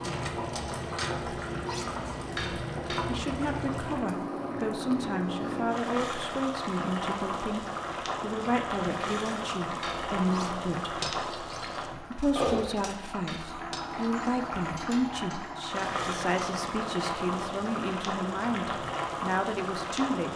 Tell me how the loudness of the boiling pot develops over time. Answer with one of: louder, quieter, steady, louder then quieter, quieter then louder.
steady.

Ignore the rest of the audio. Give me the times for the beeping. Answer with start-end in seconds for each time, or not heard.
not heard.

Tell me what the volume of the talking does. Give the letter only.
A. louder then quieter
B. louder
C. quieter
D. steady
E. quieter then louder
D.